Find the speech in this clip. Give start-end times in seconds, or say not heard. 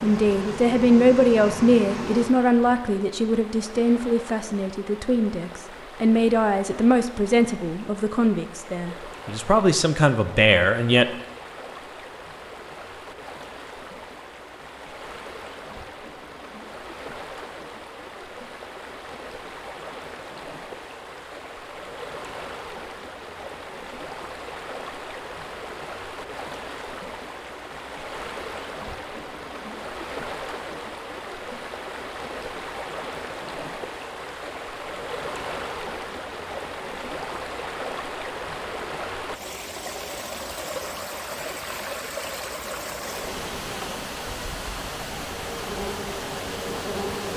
0.0-11.1.